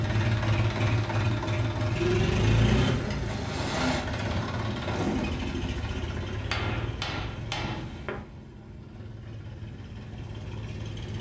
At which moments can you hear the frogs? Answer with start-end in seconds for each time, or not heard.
not heard.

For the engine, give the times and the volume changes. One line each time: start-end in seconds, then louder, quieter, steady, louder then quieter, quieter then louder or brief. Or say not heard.
0.0-11.1 quieter.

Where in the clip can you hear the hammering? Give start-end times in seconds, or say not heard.
6.5-8.2.